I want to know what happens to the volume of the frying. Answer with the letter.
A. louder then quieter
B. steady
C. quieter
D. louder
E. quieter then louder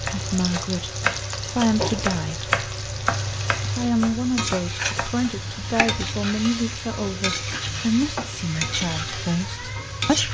B.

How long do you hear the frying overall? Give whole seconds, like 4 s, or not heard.
10 s.